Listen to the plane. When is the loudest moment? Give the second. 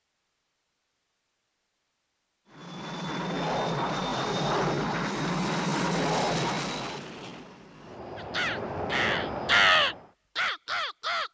6 s.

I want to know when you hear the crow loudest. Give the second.
10 s.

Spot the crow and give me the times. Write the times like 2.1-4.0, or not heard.
8.2-11.2.